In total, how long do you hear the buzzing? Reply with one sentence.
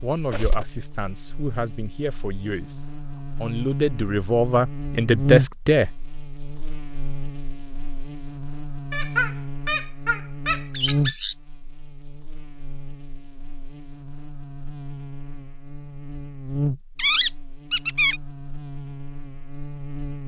The buzzing can be heard for 20 seconds in total.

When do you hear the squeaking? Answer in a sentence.
The squeaking can be heard from 0.3 to 0.8 s, from 8.9 to 11.3 s and from 16.9 to 18.2 s.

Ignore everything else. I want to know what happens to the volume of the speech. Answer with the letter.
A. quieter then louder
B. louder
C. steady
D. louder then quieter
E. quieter
B.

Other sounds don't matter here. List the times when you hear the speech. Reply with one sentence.
You can hear the speech from 0.0 to 5.9 s.